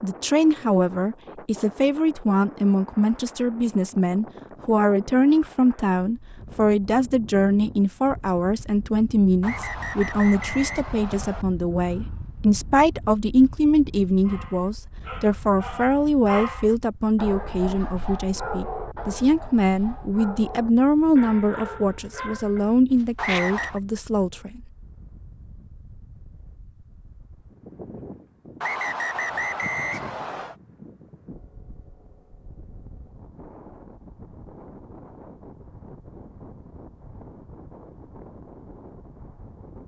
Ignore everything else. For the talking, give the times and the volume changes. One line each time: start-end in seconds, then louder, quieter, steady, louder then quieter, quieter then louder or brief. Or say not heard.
0.0-24.6 steady.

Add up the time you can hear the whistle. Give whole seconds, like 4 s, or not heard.
5 s.